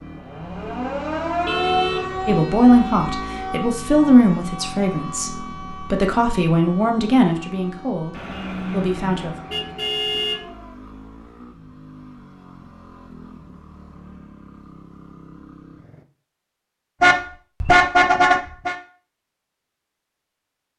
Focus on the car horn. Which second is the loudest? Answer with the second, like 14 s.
18 s.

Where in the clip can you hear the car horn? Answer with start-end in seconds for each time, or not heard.
1.4-2.4, 8.1-10.4, 17.0-18.8.